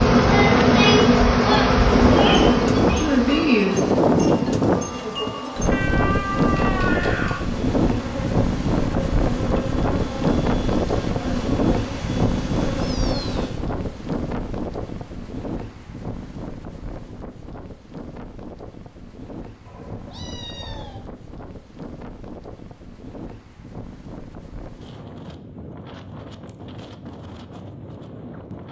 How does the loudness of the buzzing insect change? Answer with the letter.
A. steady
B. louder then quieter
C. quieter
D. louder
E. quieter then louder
C.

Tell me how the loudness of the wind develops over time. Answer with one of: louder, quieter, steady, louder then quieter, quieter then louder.
quieter.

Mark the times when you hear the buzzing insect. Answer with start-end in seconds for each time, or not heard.
0.0-13.6.